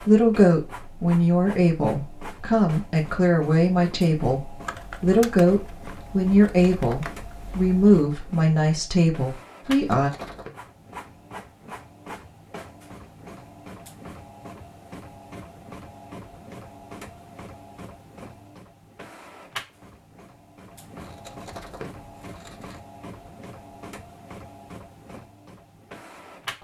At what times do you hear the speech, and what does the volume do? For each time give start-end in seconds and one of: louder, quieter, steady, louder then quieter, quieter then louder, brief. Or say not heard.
0.0-10.1 steady.